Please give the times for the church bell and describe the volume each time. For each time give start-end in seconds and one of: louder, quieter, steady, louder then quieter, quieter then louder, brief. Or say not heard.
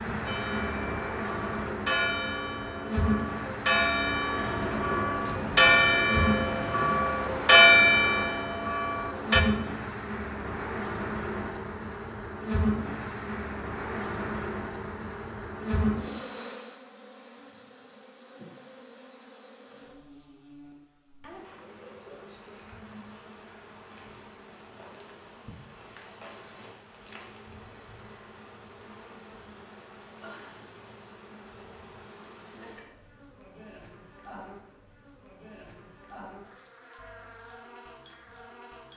0.2-9.4 louder.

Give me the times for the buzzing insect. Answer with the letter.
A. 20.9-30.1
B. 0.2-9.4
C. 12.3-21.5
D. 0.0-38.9
D.